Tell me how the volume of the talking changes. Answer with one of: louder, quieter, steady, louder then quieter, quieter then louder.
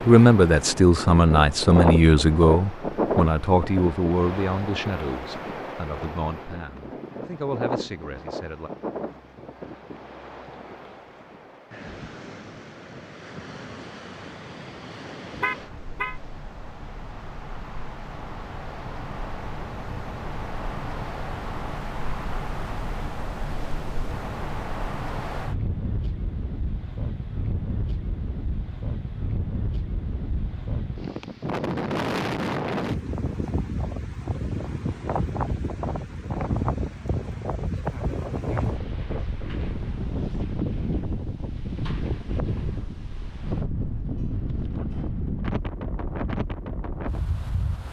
quieter.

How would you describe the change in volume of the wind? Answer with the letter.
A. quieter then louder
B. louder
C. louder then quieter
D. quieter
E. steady
A.